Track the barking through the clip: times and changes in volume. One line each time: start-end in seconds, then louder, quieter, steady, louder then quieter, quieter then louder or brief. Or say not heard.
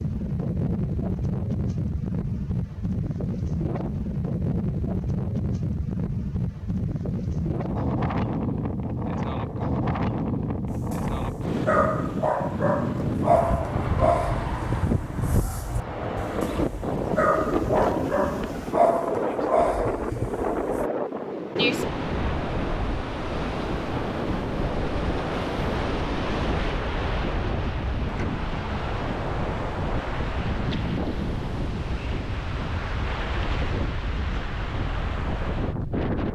10.7-20.9 quieter then louder.